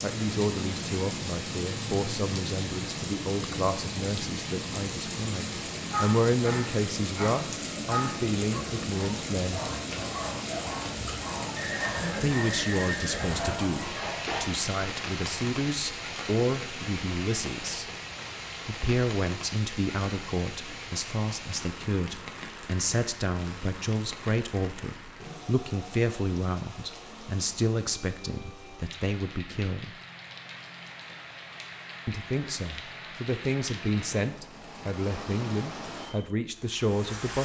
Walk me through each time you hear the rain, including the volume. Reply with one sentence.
You can hear the rain from 0.0 to 37.4 s, getting quieter.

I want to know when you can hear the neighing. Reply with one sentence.
You can hear the neighing from 11.6 to 13.5 s.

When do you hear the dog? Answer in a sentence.
The dog can be heard from 5.8 to 14.4 s.